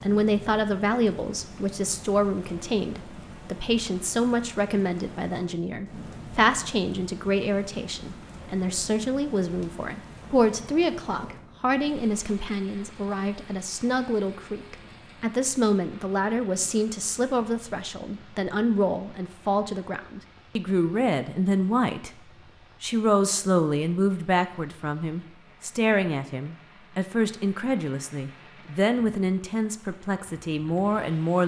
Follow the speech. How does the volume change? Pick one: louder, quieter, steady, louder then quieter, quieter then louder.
steady.